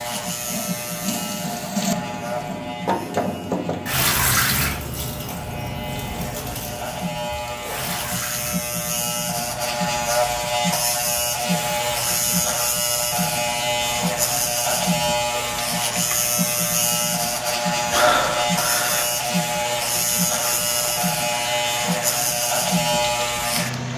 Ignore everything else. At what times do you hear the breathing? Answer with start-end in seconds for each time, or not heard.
17.9-19.1.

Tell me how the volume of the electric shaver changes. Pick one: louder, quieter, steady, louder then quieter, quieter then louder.
louder.